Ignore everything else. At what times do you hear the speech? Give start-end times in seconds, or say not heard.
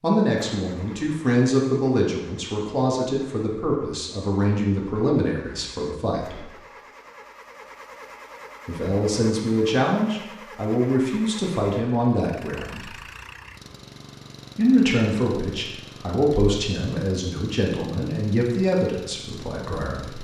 0.0-6.5, 8.7-12.9, 14.6-20.1.